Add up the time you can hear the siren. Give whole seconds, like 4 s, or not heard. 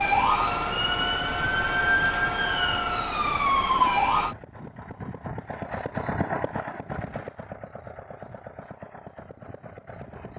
4 s.